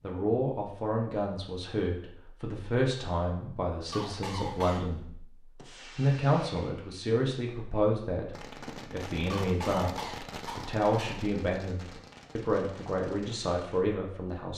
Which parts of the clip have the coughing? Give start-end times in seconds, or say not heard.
3.9-5.0, 9.2-11.2.